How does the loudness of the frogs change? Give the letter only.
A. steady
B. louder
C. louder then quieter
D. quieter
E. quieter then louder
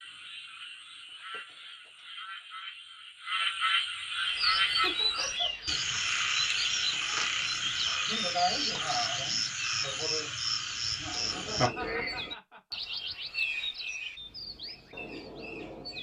B.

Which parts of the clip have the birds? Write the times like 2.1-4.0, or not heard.
4.2-15.9.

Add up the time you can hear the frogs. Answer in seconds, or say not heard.
12 s.